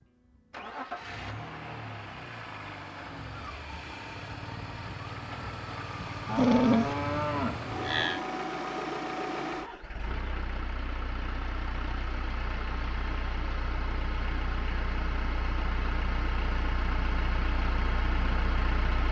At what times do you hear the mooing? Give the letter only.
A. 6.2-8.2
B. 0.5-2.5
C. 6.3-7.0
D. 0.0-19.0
A.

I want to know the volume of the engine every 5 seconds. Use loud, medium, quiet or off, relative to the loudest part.
medium, loud, loud, loud.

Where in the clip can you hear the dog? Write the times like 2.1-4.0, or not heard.
6.3-7.0.